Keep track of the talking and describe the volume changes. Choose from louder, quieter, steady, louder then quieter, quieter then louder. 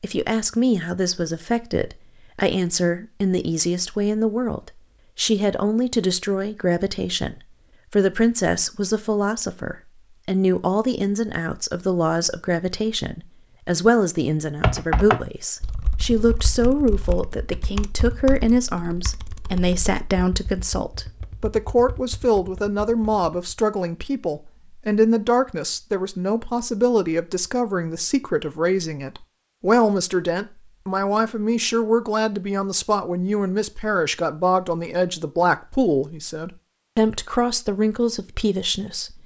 steady.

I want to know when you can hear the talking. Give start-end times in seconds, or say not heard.
0.0-39.2.